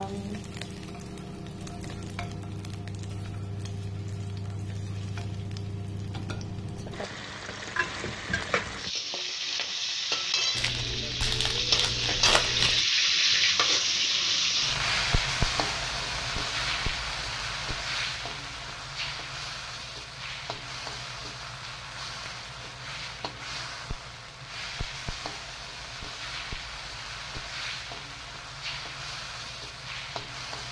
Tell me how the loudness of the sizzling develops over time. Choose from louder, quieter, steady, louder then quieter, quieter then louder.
louder then quieter.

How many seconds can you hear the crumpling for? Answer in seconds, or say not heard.
2 s.